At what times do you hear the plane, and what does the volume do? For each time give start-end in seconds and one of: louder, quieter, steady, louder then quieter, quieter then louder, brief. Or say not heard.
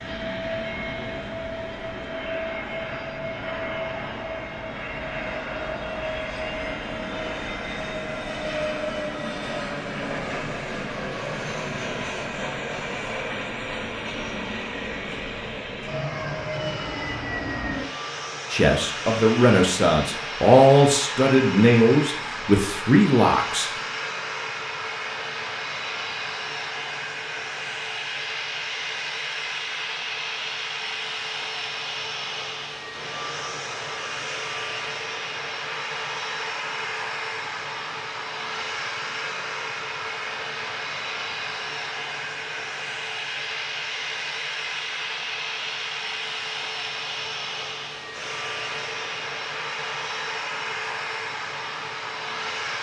0.0-52.7 steady.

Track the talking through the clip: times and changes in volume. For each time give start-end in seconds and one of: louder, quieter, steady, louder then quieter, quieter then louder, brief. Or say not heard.
18.5-23.7 steady.